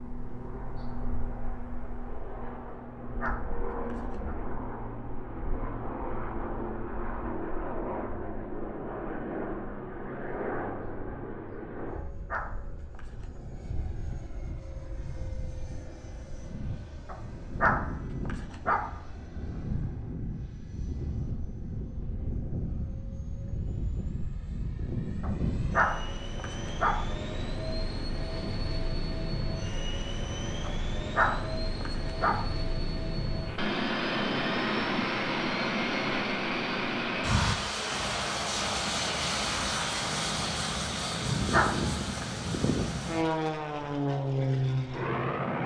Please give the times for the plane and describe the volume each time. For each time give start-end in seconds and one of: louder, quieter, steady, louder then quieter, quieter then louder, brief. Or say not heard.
0.0-45.6 louder.